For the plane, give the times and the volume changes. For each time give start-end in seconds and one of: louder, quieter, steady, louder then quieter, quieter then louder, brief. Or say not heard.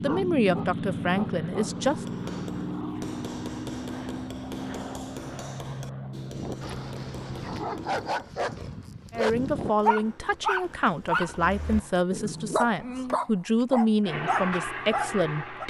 0.0-8.2 quieter
14.0-15.6 brief.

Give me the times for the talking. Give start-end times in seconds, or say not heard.
0.0-2.0, 9.1-15.6.